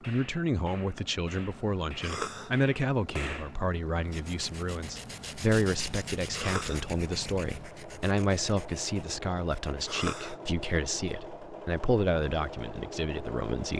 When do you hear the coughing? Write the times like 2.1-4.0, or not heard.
2.0-2.5, 6.3-6.8, 9.8-10.3.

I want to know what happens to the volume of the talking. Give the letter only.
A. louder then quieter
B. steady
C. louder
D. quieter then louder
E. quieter
B.